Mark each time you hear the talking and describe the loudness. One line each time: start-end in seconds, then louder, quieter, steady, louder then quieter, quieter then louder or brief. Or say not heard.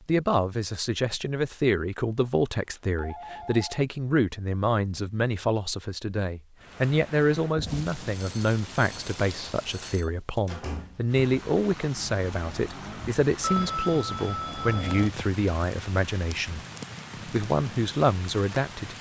0.1-16.6 steady
17.2-18.9 brief.